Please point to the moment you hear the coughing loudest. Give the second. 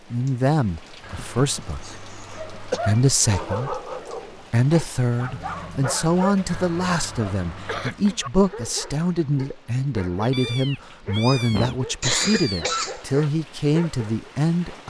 12 s.